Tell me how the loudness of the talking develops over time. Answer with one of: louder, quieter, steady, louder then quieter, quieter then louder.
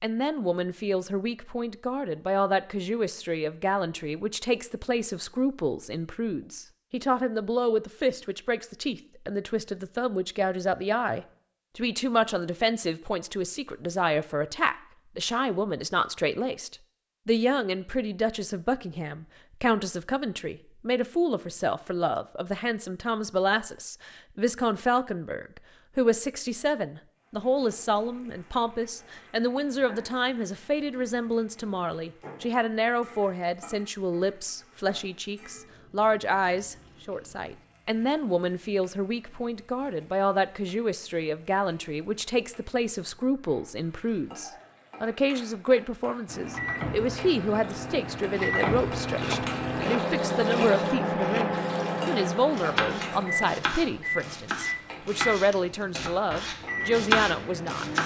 steady.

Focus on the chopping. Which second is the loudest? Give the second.
57 s.